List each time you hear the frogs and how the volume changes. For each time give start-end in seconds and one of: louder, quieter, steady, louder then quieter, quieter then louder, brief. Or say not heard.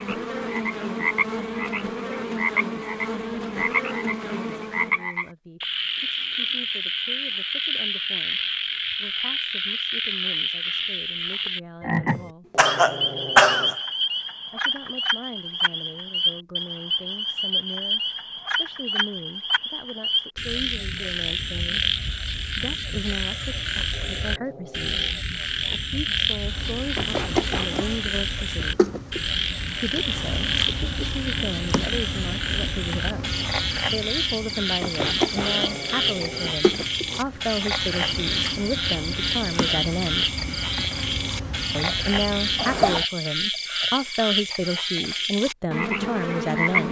0.0-46.8 steady.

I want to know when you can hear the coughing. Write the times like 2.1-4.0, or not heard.
12.6-13.8, 41.9-43.0.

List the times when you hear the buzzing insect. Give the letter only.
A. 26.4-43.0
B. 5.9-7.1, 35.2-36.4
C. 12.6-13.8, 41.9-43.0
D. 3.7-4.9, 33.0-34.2
A.